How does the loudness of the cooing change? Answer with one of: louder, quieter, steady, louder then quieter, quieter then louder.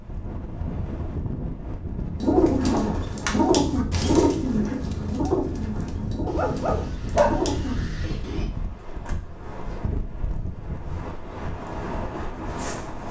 quieter then louder.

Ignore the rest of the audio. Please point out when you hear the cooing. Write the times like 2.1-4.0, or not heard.
2.2-8.5.